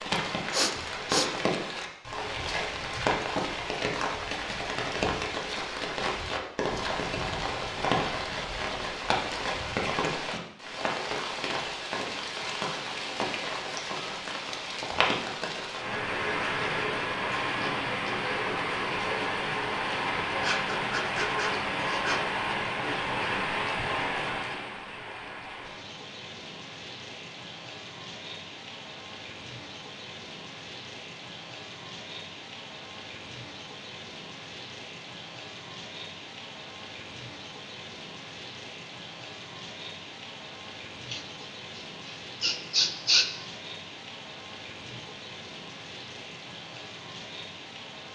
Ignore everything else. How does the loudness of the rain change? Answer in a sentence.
The volume of the rain goes down.